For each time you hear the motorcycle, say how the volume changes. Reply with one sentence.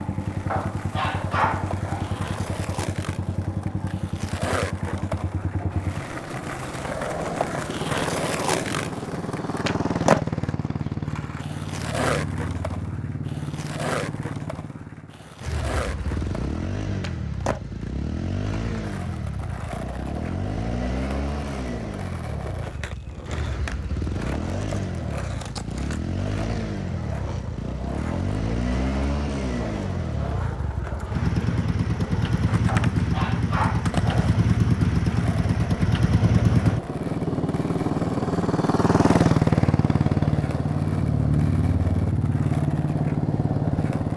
The motorcycle can be heard from 0.0 to 44.1 s, getting louder.